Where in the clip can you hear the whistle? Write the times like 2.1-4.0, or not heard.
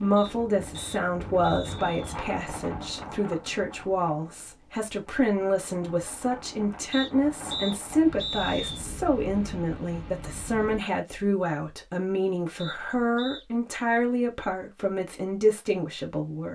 0.1-2.1, 6.9-8.8, 12.6-13.4.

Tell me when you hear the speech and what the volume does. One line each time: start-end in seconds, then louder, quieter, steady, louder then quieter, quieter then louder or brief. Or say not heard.
0.0-16.4 steady.